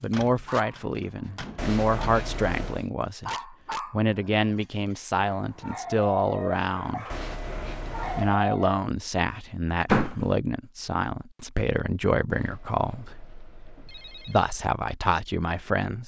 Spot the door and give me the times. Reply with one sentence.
The door can be heard from 0.1 to 2.1 s and from 9.8 to 10.3 s.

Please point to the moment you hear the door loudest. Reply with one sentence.
The loudest moment of the door is at 10 seconds.